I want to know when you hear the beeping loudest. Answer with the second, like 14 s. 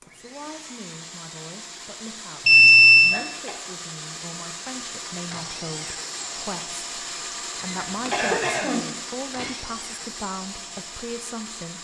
3 s.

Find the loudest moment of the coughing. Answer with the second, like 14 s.
8 s.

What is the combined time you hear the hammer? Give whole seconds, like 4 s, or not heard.
not heard.